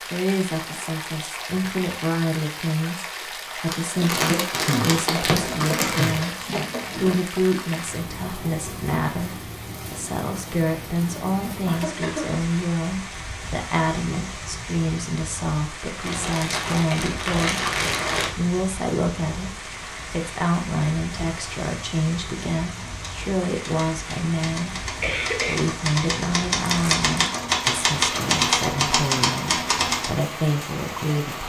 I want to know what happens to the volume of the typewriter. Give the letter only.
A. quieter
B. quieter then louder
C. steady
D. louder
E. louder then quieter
D.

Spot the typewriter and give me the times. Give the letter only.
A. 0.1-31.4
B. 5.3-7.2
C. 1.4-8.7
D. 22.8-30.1
D.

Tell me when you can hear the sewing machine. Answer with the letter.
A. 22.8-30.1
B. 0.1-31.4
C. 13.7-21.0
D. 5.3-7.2
D.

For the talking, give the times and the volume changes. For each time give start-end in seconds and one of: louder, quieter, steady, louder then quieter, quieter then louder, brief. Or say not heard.
0.1-31.4 steady.